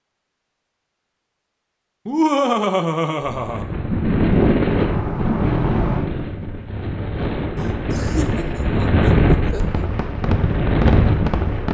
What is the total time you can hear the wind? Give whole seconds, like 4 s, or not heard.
8 s.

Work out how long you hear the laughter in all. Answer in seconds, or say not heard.
4 s.